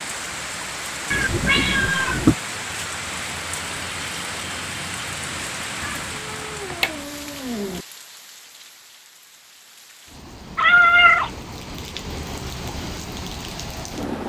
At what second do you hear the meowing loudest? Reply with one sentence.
The loudest moment of the meowing is at 11 seconds.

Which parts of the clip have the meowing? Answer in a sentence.
The meowing can be heard from 1.1 to 2.4 s, from 5.8 to 7.8 s and from 10.6 to 11.3 s.